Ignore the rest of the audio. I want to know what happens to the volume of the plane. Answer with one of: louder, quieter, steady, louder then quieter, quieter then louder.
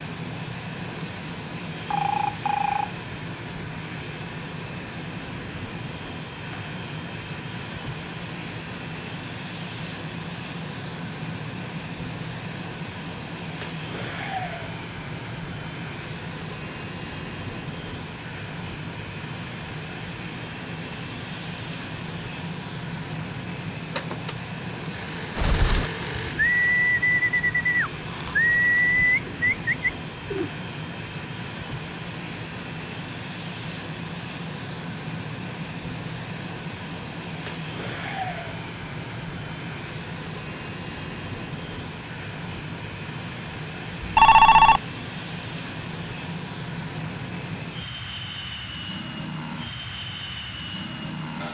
steady.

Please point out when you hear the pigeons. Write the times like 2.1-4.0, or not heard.
25.4-30.5.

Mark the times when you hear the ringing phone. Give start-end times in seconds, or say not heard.
1.9-2.9, 23.9-26.4, 44.0-44.8.